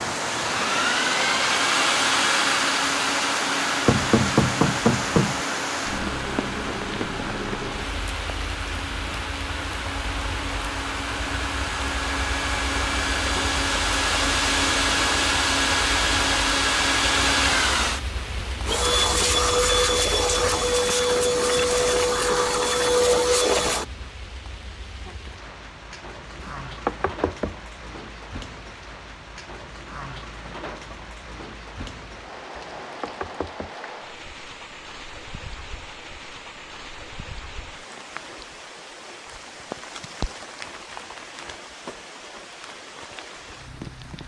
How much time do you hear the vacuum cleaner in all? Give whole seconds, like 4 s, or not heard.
24 s.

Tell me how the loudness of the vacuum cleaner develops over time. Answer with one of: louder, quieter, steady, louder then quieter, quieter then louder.
quieter then louder.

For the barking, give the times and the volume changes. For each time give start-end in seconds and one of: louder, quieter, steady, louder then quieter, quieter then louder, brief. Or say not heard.
not heard.